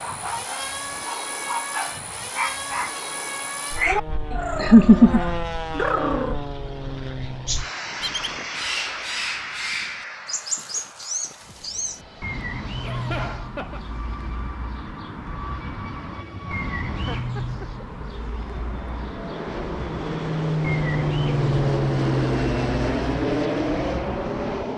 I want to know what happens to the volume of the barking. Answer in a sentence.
The loudness of the barking goes up.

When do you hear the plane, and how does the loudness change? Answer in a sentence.
You can hear the plane from 0.0 to 24.7 s, getting quieter then louder.